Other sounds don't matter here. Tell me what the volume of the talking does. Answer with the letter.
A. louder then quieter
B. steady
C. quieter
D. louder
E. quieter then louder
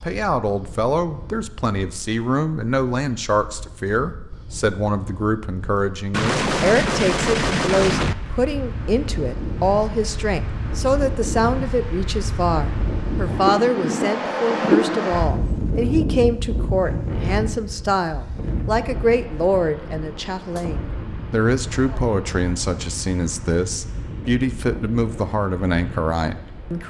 B.